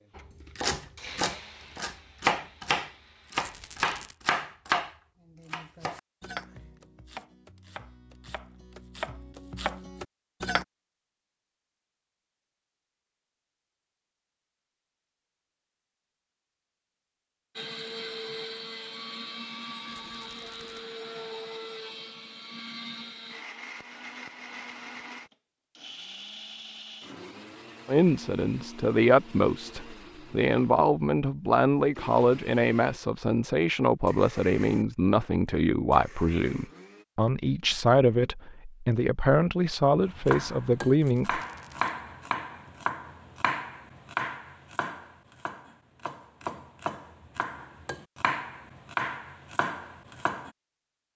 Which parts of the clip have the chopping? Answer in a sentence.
The chopping can be heard from 0.1 to 10.7 s and from 40.0 to 50.5 s.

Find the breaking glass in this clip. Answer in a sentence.
You can't hear the breaking glass here.